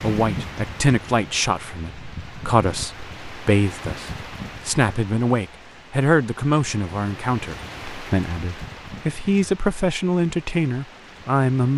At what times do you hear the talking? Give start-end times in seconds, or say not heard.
0.0-11.7.